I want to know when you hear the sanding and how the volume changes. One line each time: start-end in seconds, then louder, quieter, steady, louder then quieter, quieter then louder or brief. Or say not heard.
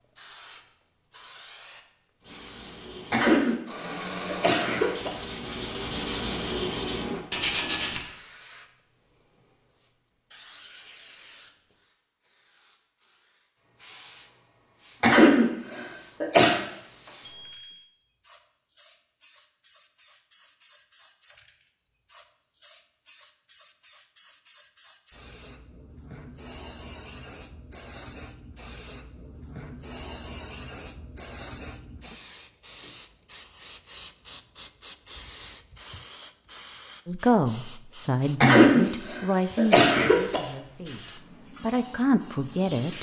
2.2-8.1 louder.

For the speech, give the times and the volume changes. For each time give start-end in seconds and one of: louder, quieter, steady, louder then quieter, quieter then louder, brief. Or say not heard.
37.0-42.9 quieter then louder.